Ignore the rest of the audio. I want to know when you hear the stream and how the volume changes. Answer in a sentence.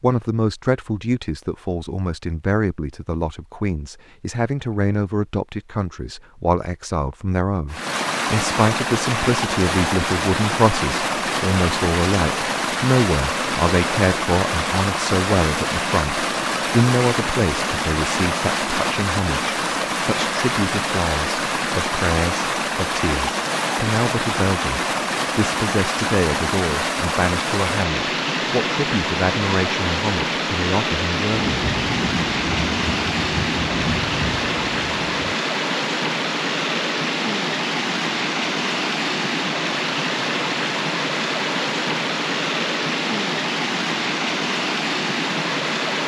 The stream can be heard from 7.7 to 46.0 s, at a steady volume.